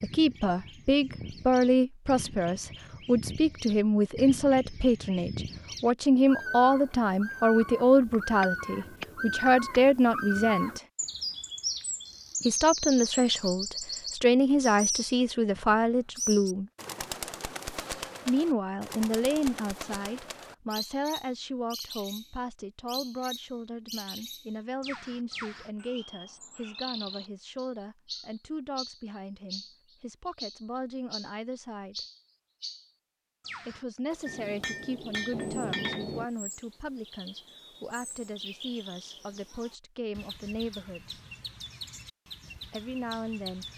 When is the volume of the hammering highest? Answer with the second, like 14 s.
36 s.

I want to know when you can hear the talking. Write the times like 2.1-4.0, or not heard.
0.0-10.8, 12.4-16.7, 18.2-32.0, 33.6-41.2, 42.7-43.6.